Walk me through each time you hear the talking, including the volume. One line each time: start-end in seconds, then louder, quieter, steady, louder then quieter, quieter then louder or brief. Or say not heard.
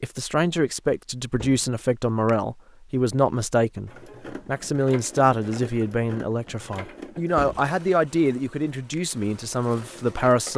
0.0-10.5 steady.